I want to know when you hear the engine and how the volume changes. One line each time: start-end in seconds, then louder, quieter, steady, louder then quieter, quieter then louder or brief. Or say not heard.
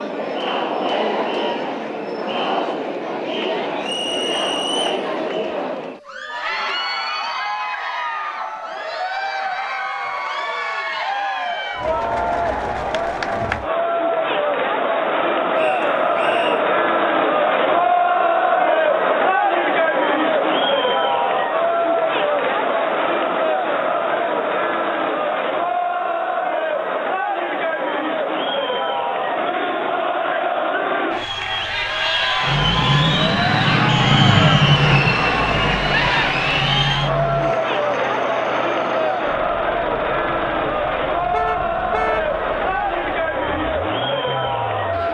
32.4-45.0 quieter.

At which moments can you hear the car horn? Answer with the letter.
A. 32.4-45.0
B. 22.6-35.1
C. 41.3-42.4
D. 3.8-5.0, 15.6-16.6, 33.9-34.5
C.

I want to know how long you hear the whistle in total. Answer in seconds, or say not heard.
3 s.